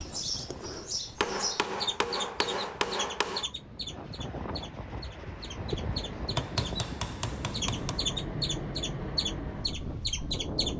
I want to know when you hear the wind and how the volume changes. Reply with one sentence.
The wind can be heard from 0.0 to 10.7 s, getting louder.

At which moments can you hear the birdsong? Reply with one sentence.
The birdsong can be heard from 0.0 to 6.8 s and from 7.5 to 10.7 s.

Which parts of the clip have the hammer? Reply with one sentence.
The hammer can be heard from 1.1 to 3.5 s and from 6.3 to 8.1 s.